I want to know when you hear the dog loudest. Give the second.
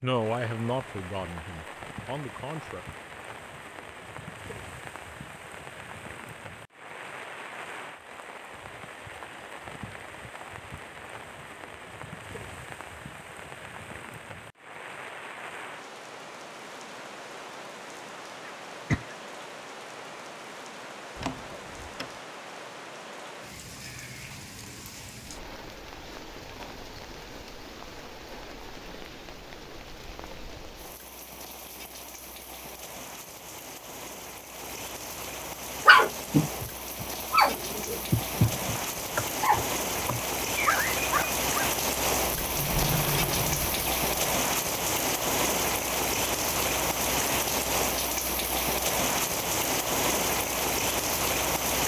36 s.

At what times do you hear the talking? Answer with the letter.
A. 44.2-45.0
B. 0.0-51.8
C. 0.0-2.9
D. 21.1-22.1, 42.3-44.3
C.